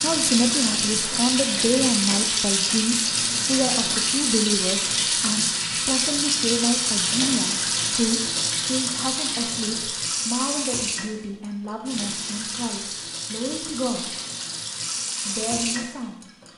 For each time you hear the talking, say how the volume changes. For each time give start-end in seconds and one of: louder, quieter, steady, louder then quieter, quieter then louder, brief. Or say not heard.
0.0-14.1 quieter
15.2-16.2 brief.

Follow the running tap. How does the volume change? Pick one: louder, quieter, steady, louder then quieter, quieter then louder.
quieter.